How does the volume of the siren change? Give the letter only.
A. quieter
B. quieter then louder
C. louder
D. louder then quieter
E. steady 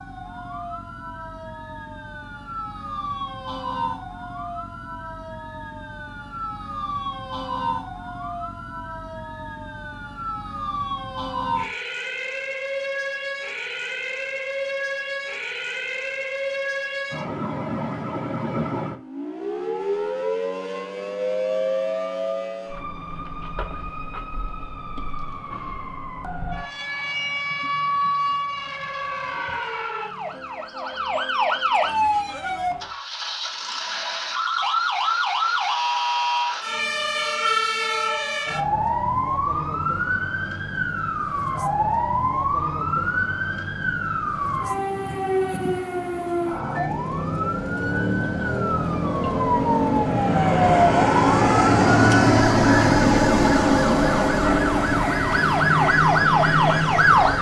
C.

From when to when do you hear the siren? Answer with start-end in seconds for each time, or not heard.
0.0-57.3.